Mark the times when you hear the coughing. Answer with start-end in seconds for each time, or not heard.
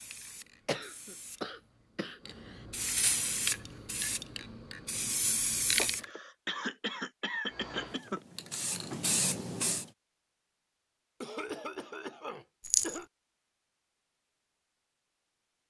0.7-2.5, 5.8-8.2, 11.2-13.1.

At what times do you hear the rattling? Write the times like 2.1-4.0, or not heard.
12.6-13.0.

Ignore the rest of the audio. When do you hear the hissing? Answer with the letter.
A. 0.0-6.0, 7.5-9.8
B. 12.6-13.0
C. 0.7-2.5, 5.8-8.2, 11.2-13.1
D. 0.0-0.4
A.